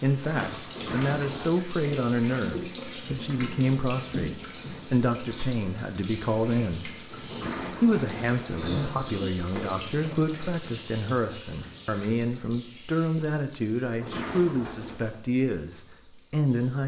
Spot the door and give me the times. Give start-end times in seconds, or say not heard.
0.7-1.6, 7.2-9.1, 14.0-15.2.